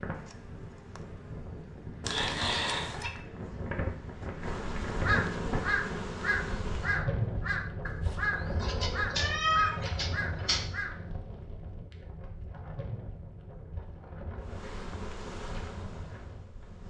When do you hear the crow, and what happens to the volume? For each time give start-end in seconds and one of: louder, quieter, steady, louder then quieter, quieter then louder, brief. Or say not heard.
5.0-11.2 quieter.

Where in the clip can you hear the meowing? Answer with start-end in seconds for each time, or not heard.
2.0-3.1, 8.6-10.6.